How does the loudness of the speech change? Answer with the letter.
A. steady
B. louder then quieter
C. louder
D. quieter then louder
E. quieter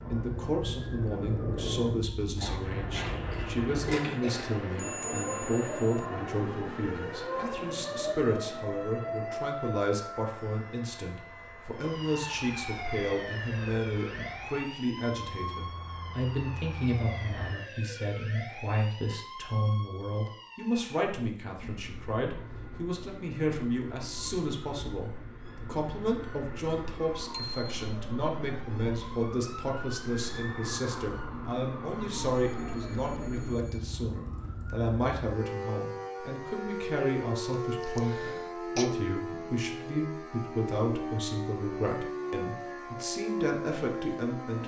A.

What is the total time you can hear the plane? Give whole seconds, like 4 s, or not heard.
18 s.